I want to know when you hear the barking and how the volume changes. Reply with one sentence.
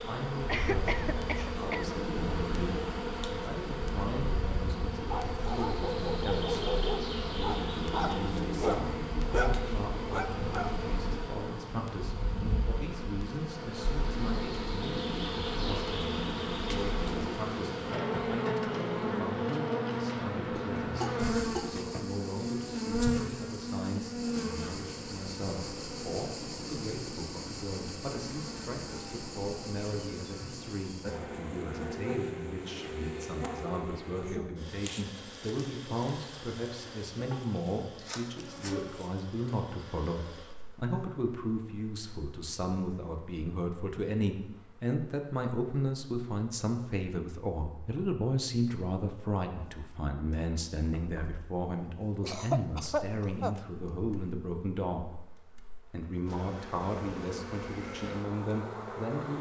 The barking can be heard from 5.0 to 10.8 s, at a steady volume.